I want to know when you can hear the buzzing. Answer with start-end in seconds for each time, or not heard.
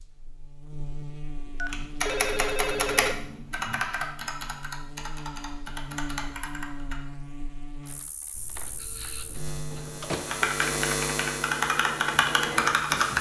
0.0-13.1.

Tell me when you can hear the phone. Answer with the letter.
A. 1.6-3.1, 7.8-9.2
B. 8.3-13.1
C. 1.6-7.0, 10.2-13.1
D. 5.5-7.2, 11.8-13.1
A.